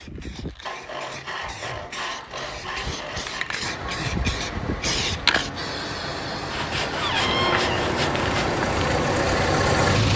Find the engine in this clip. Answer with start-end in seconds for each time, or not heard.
3.6-10.1.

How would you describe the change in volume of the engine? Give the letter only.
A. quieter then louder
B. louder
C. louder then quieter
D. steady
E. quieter
B.